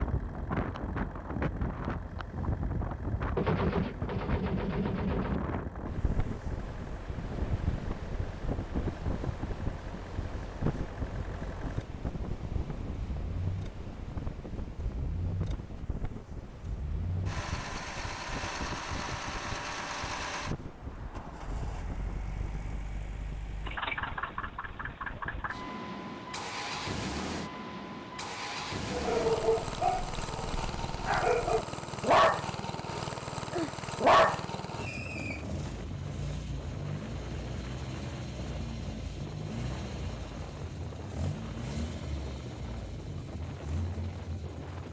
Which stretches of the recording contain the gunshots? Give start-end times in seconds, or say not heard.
3.4-5.4.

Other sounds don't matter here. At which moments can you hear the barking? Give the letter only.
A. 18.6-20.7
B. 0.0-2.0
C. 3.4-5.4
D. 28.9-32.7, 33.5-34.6
D.